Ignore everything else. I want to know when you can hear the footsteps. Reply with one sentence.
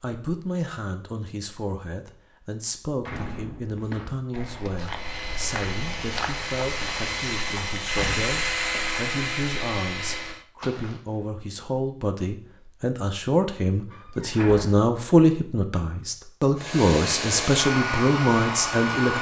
You can hear the footsteps from 3.8 to 11.3 s.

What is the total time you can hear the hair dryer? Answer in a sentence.
The hair dryer can be heard for 8 seconds in total.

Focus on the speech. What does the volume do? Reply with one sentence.
The loudness of the speech goes up.